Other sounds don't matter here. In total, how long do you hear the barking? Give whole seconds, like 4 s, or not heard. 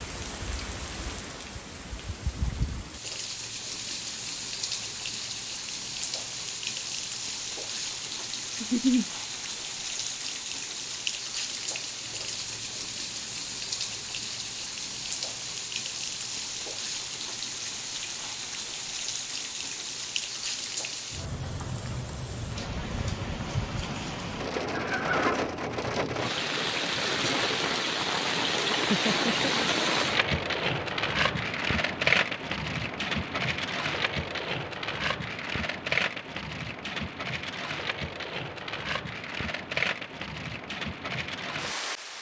not heard.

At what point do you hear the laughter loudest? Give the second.
9 s.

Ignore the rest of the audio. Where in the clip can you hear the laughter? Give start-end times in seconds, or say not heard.
8.6-9.1, 24.7-25.4, 28.9-29.5.